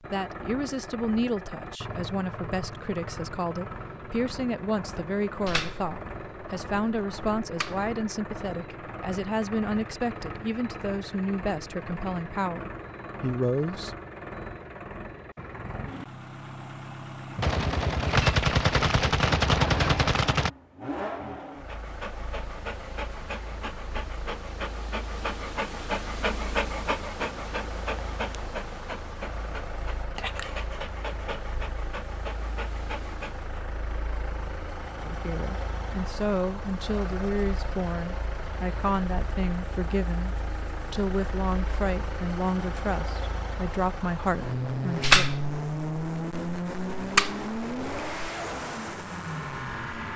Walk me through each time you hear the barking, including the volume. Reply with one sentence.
The barking can be heard from 21.4 to 33.5 s, getting louder then quieter.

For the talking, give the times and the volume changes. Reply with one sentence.
You can hear the talking from 0.1 to 13.9 s, at a steady volume; and from 35.0 to 45.2 s, at a steady volume.